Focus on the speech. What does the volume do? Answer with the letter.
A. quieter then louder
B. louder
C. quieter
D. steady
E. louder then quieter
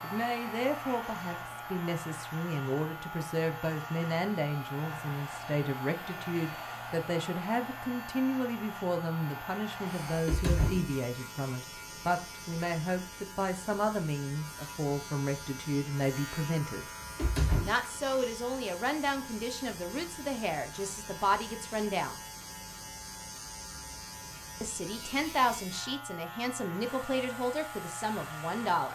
D.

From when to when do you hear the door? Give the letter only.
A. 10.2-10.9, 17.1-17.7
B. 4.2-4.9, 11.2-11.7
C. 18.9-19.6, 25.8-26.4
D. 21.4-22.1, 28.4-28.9
A.